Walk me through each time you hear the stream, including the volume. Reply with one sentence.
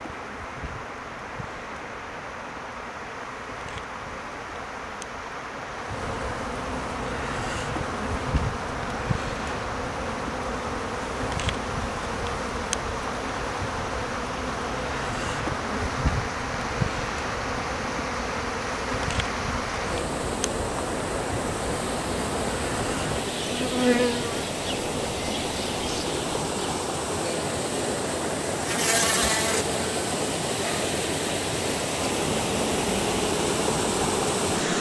The stream can be heard from 0.0 to 34.7 s, getting louder.